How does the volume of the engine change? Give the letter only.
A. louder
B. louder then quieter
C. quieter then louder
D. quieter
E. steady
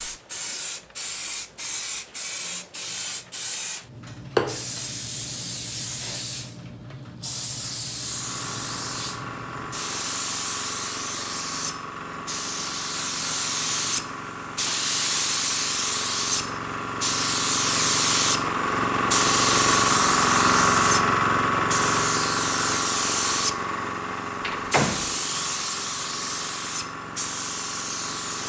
B.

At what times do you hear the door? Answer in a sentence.
You can hear the door from 24.4 to 25.1 s.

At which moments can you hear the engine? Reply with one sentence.
The engine can be heard from 7.9 to 28.4 s.